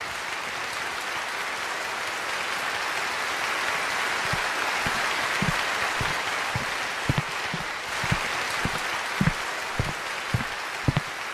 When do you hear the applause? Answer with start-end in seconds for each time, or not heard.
0.0-11.2.